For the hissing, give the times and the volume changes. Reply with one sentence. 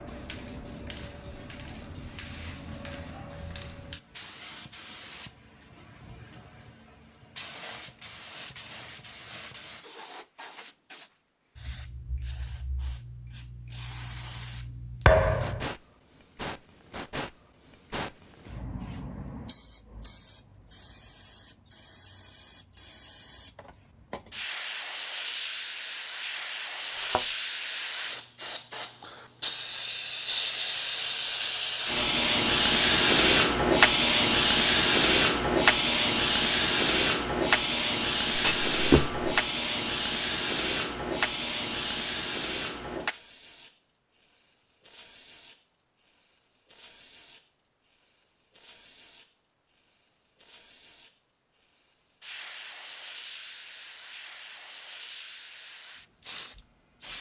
You can hear the hissing from 0.0 to 57.1 s, getting louder then quieter.